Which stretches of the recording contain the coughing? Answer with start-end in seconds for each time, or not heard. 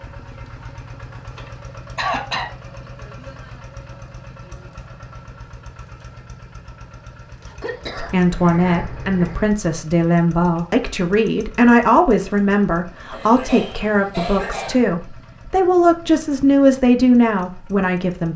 1.9-2.5, 7.6-9.5, 13.1-14.8.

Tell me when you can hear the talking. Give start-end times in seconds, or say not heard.
8.0-18.3.